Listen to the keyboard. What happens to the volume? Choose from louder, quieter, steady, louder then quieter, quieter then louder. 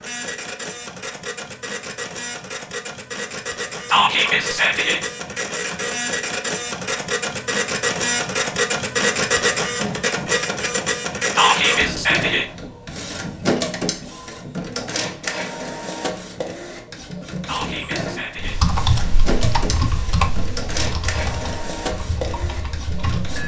quieter.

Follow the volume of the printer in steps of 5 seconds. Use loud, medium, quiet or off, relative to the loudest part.
medium, loud, loud, medium, medium.